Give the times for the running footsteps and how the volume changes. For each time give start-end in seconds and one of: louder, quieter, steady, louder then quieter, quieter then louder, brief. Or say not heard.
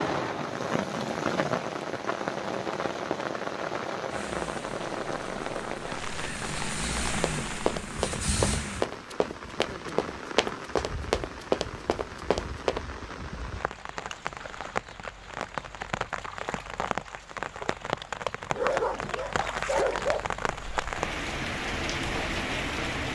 7.0-12.8 steady.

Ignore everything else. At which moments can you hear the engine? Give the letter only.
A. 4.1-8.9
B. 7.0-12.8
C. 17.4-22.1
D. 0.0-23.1
A.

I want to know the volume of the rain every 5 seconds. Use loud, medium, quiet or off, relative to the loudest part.
loud, medium, medium, loud, loud.